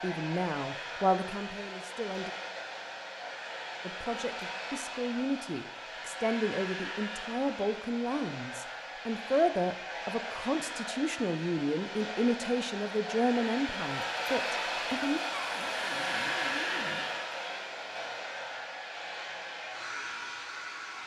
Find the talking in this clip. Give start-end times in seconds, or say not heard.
0.0-2.3, 3.9-15.2.